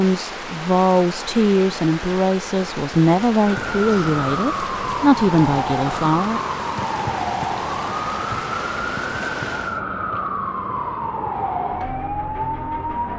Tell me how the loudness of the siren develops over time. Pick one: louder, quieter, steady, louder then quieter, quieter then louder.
steady.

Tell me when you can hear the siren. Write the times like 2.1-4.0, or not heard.
3.4-13.1.